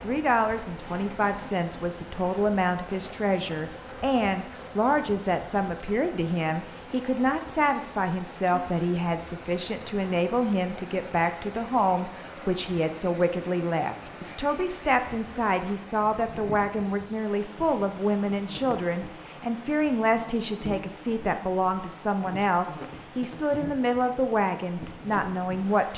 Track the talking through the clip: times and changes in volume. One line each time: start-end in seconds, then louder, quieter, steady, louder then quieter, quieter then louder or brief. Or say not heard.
0.0-25.9 steady.